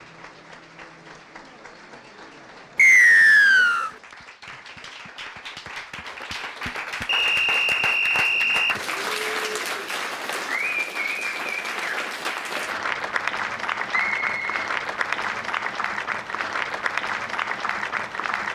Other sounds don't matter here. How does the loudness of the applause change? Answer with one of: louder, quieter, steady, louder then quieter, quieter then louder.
louder.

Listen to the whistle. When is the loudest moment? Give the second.
3 s.